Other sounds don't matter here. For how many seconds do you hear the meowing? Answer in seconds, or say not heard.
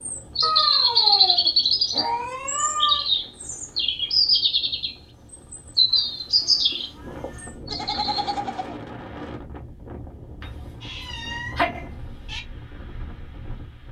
6 s.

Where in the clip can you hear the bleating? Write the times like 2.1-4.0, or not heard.
7.7-8.8.